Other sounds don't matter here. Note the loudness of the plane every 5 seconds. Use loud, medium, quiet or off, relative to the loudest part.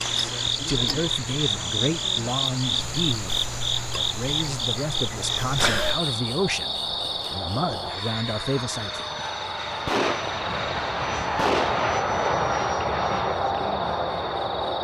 quiet, medium, loud.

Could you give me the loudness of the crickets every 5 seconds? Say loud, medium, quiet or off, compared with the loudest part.
loud, loud, quiet.